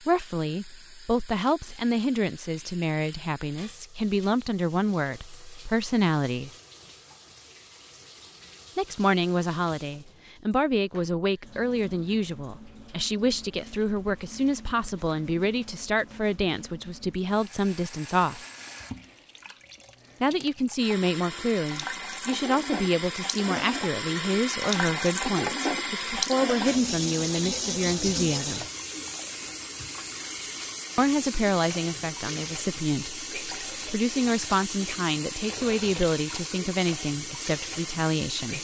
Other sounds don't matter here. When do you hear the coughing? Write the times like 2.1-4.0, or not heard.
not heard.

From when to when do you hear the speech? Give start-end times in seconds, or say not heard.
0.0-6.5, 8.8-18.4, 20.2-28.6, 30.9-38.5.